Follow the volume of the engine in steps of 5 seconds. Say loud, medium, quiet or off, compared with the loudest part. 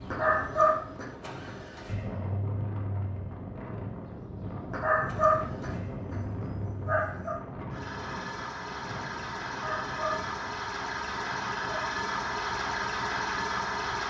medium, medium, loud.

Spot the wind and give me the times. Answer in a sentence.
The wind can be heard from 0.1 to 14.0 s.